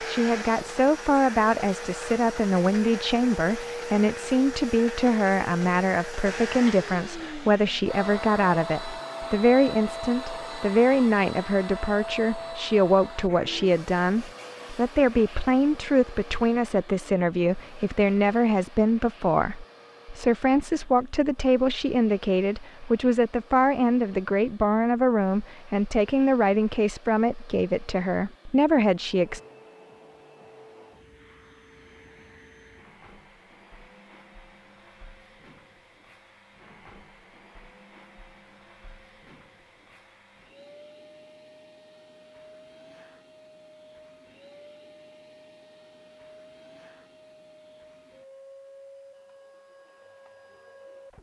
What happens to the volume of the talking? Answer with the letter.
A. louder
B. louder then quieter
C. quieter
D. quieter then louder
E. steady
E.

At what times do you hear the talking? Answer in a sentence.
The talking can be heard from 0.1 to 29.4 s.